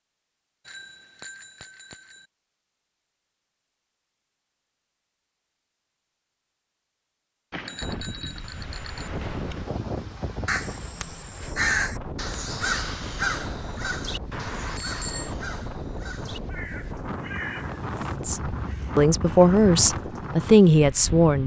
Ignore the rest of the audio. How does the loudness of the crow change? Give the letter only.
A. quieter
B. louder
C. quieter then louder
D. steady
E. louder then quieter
A.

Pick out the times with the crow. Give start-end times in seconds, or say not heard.
10.4-19.9.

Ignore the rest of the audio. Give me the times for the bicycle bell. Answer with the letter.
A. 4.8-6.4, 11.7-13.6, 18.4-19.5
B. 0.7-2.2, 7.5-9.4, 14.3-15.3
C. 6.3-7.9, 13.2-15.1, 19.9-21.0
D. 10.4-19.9
B.